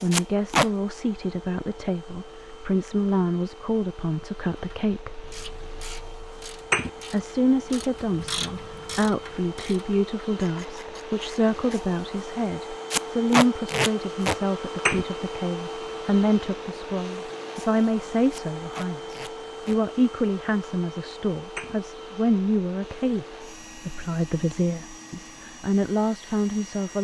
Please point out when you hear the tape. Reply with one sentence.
The tape can be heard from 0.1 to 0.7 s, from 12.9 to 14.3 s and from 18.3 to 19.8 s.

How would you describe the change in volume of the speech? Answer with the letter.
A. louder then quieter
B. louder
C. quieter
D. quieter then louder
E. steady
E.